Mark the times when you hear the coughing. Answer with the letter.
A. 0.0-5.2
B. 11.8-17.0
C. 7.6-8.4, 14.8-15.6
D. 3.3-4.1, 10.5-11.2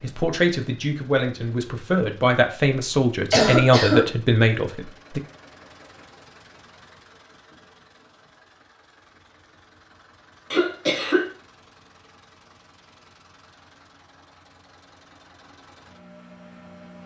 D.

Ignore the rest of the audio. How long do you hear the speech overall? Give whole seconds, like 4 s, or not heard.
5 s.